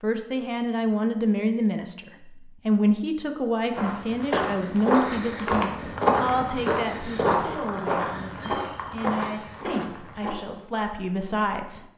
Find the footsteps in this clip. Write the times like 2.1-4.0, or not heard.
3.7-10.3.